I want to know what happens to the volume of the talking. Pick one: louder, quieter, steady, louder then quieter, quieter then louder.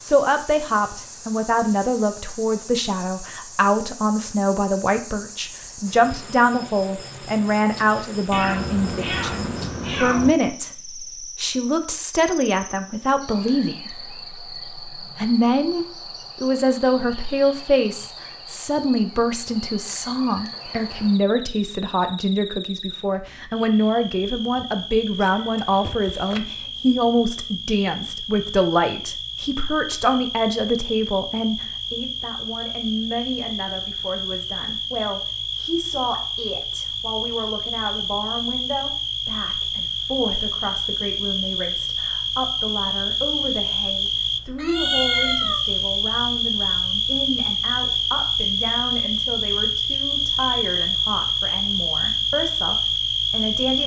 quieter.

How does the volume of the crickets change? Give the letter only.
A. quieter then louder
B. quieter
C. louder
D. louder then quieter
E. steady
C.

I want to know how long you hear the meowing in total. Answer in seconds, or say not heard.
4 s.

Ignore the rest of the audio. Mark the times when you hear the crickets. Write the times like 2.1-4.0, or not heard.
0.0-53.8.